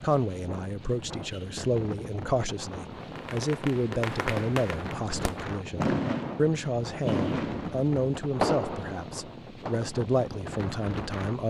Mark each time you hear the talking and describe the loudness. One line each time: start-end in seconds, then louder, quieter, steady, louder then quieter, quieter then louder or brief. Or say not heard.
0.0-11.4 steady.